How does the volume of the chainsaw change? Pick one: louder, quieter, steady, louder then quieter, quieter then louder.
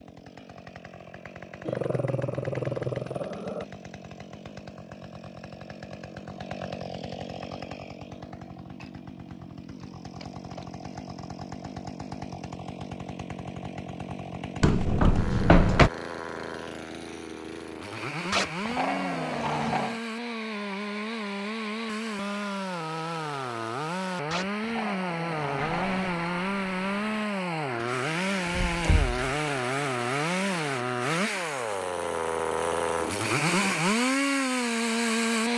louder.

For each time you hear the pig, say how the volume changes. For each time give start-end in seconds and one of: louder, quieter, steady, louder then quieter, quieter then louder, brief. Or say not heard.
not heard.